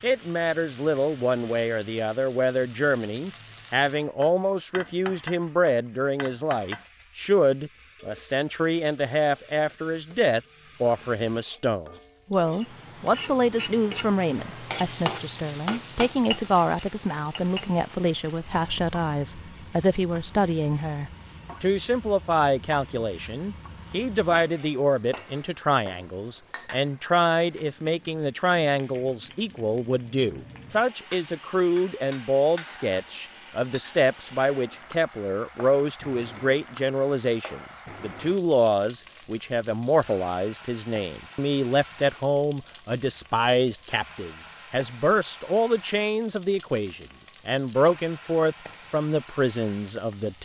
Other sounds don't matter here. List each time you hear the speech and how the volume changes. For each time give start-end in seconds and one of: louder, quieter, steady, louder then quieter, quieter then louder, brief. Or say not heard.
0.0-50.3 steady.